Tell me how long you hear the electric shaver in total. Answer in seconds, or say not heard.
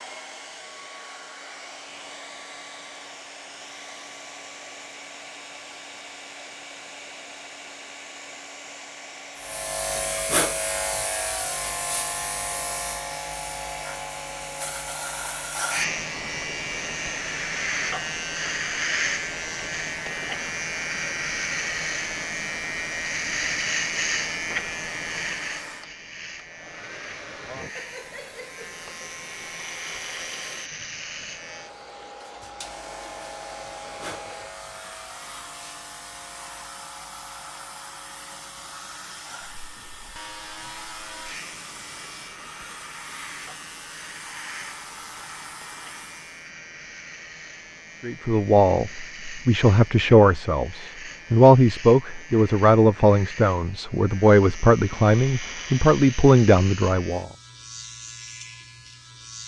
50 s.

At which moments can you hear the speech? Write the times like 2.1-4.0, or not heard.
48.0-57.2.